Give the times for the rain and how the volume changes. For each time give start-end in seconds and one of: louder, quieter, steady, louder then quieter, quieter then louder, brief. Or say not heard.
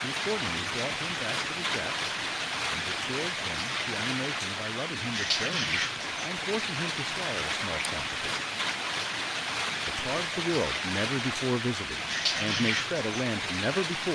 0.0-14.0 steady.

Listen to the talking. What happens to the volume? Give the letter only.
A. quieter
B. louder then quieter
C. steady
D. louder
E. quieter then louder
D.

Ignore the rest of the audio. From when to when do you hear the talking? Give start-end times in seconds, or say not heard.
0.0-8.2, 9.8-14.0.